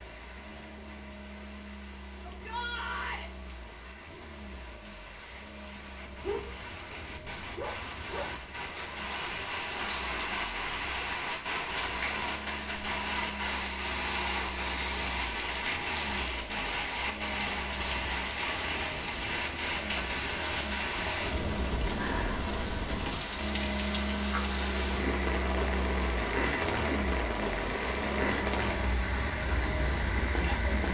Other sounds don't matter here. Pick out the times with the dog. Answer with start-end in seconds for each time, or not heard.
6.2-8.4.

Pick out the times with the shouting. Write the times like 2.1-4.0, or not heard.
2.2-3.3.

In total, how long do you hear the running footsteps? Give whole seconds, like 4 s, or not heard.
not heard.